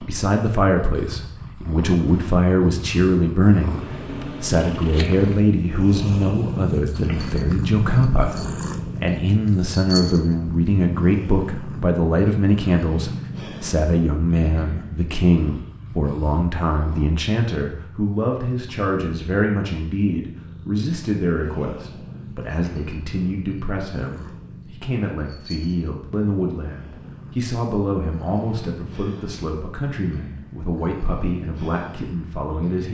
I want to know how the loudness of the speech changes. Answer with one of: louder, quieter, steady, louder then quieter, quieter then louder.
quieter.